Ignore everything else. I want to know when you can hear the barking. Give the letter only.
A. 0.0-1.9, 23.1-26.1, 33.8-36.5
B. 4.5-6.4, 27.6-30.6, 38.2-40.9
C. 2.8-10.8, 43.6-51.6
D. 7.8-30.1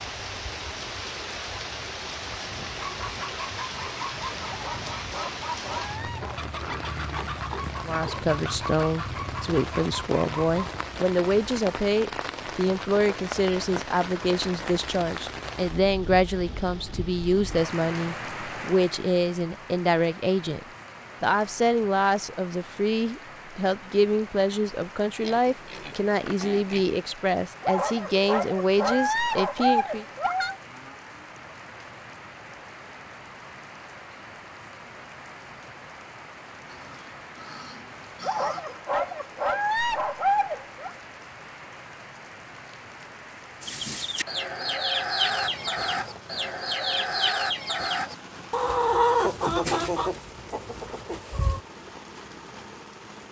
B.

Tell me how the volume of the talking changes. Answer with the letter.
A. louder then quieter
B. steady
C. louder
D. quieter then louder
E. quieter
B.